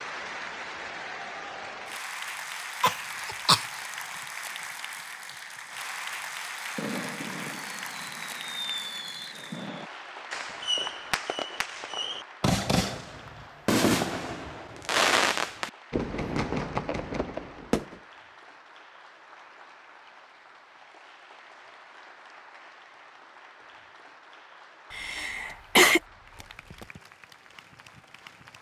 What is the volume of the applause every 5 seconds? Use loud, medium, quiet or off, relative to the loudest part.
loud, loud, medium, quiet, quiet, quiet.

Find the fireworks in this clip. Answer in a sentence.
You can hear the fireworks from 6.5 to 17.9 s.